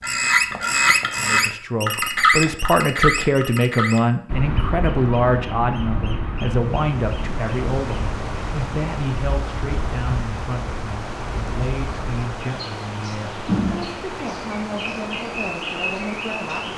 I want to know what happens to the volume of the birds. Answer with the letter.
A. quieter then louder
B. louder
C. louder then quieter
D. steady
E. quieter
A.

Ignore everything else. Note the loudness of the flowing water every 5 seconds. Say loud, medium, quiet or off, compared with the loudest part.
off, loud, loud, loud.